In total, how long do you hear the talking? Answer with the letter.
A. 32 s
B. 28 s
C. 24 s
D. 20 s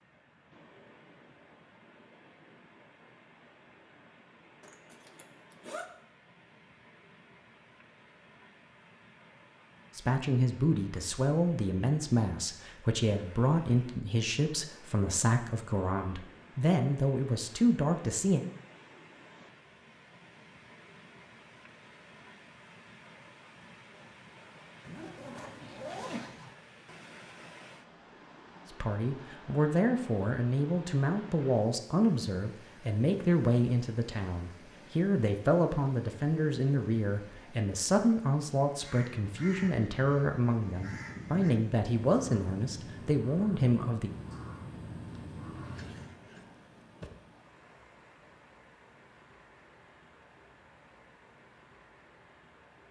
C.